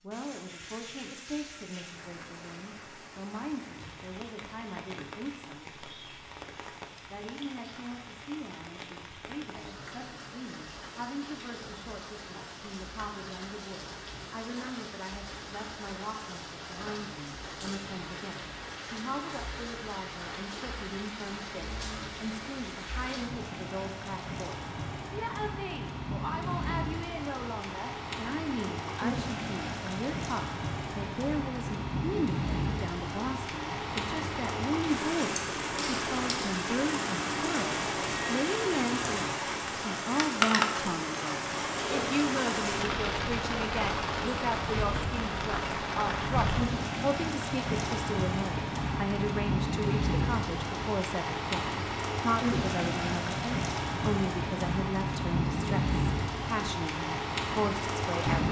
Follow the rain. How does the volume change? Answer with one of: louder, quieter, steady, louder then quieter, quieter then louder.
louder.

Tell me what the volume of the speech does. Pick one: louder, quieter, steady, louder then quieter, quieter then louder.
louder.